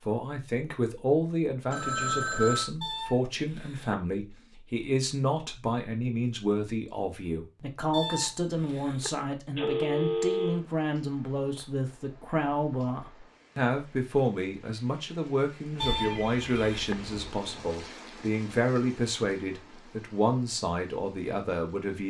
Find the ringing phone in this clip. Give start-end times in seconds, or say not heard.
1.7-2.7, 9.6-10.6, 15.8-17.3.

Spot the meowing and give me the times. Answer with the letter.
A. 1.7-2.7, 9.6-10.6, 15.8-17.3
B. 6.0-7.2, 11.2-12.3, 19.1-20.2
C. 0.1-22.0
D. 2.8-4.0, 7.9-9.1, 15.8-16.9
D.